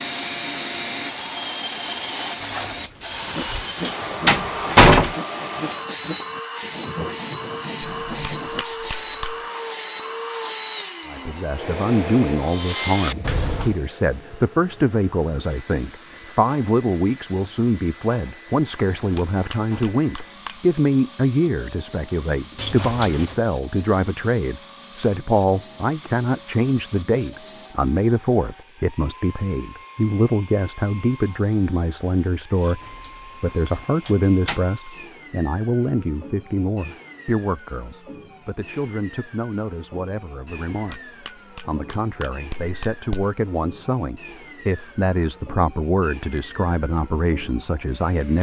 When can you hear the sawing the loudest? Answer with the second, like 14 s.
13 s.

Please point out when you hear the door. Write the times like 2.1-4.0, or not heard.
2.4-5.2, 22.6-23.4, 32.6-34.6.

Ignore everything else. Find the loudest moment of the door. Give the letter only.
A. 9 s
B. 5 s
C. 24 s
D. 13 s
B.